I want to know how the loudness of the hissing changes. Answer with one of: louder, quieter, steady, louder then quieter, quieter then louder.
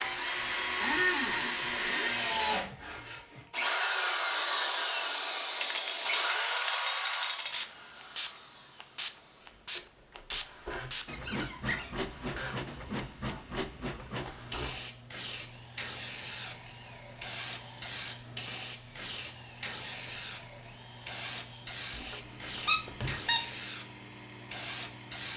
steady.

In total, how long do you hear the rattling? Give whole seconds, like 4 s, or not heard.
2 s.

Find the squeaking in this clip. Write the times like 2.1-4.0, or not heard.
0.8-2.2, 11.1-11.9, 21.9-23.4.